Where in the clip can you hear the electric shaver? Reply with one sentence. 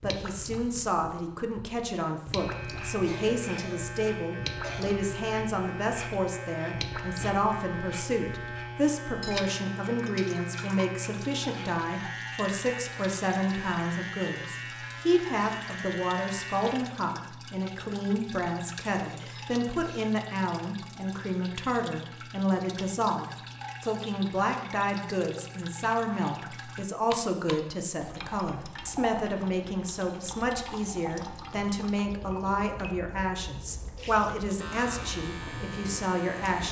The electric shaver can be heard from 2.4 to 16.8 s and from 34.5 to 36.6 s.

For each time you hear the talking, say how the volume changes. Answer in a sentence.
You can hear the talking from 0.0 to 36.6 s, at a steady volume.